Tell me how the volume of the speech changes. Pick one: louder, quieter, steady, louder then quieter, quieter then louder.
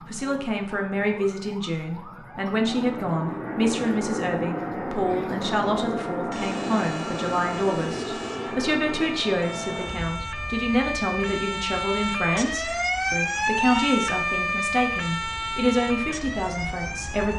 steady.